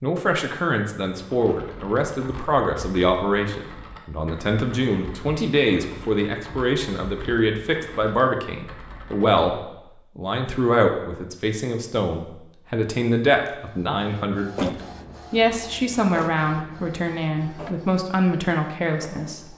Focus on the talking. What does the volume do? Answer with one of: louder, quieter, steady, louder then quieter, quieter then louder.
steady.